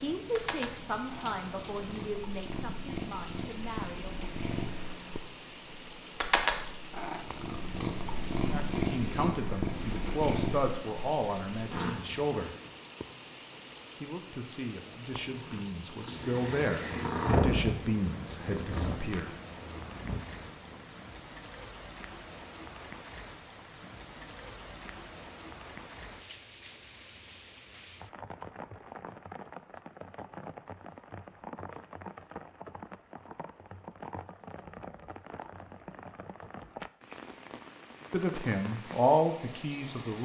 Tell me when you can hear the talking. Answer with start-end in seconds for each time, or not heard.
0.0-4.2, 8.5-12.6, 14.0-19.3, 38.1-40.2.